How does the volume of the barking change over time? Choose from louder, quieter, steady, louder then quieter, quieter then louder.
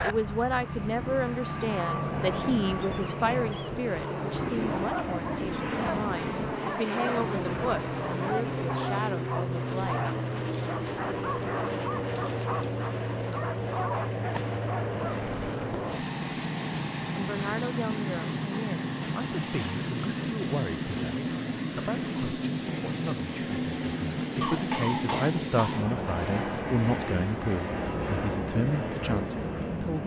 steady.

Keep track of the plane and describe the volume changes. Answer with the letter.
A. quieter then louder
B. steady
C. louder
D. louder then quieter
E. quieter
B.